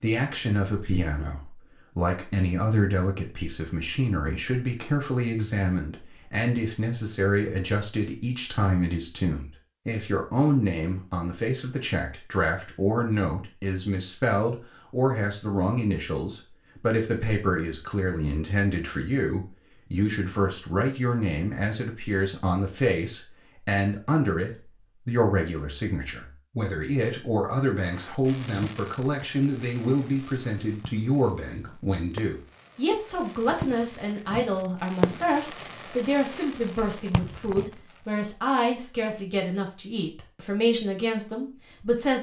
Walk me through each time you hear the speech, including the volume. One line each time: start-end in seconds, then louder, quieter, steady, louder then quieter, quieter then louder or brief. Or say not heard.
0.0-42.1 steady.